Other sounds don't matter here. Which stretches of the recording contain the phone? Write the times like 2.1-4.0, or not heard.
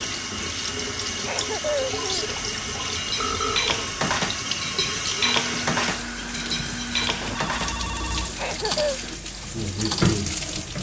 3.1-3.6, 7.2-8.3.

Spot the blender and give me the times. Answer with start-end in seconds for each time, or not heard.
5.2-9.2.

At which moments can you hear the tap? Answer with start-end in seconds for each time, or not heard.
0.0-10.7.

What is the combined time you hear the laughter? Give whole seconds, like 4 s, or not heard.
2 s.